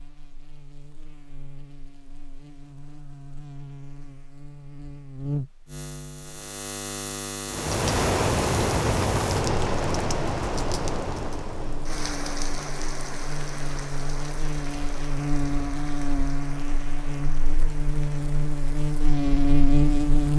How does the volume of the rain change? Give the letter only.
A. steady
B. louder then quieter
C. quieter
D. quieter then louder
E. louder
C.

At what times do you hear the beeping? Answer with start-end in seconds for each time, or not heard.
not heard.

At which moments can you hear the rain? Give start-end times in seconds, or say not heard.
7.5-20.3.